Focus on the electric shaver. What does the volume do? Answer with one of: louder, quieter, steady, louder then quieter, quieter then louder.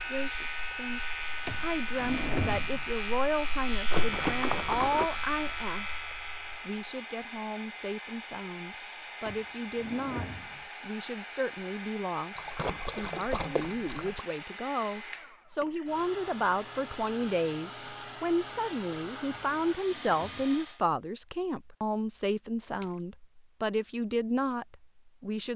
steady.